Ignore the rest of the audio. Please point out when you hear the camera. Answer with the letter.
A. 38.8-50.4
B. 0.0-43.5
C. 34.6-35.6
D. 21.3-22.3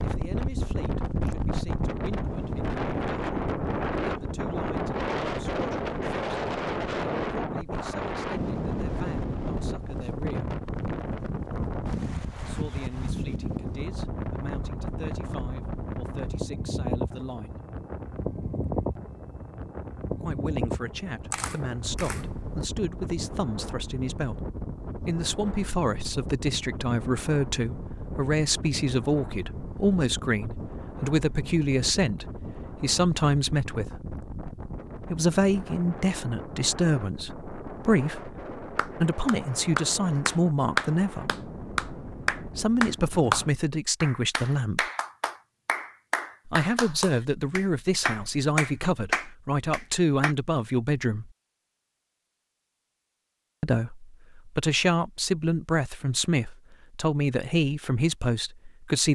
D.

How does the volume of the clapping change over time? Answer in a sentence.
The volume of the clapping goes down, then up.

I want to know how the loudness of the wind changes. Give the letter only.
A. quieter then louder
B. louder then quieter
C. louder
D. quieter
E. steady
D.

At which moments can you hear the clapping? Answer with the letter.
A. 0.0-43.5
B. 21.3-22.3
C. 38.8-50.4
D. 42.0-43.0
C.